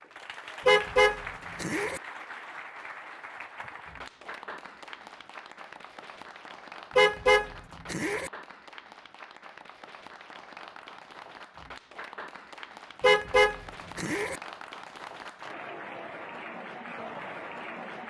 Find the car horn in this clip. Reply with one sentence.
You can hear the car horn from 0.7 to 2.0 s, from 7.0 to 8.3 s and from 13.0 to 14.4 s.